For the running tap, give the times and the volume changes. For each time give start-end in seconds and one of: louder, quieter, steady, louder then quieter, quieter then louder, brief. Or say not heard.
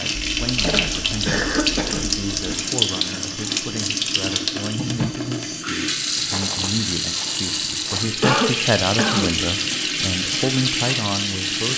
0.0-11.7 steady.